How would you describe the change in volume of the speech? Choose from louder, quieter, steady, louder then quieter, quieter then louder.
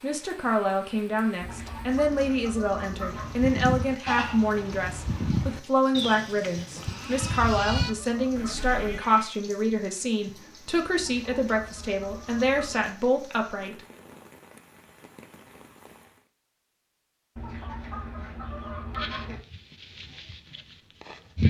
steady.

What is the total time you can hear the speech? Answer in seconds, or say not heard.
14 s.